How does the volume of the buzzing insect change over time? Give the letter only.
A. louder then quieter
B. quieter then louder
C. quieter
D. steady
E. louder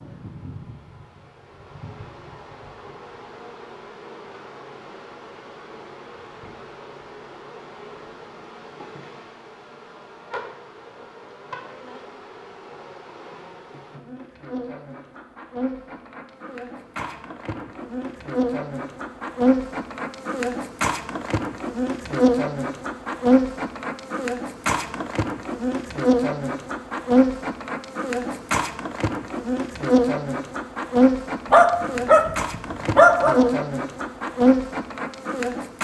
E.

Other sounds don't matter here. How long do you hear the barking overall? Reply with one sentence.
You can hear the barking for 2 seconds altogether.